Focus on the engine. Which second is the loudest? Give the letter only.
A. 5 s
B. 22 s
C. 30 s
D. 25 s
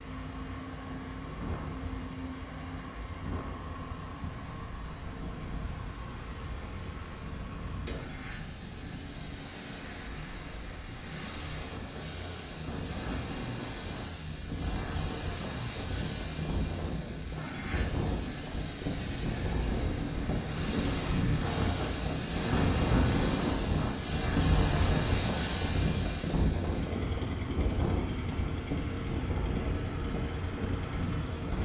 D.